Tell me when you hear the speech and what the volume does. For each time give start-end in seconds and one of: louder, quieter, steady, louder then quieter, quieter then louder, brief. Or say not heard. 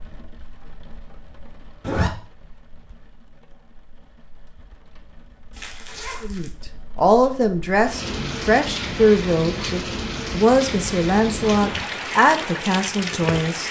6.2-13.6 steady.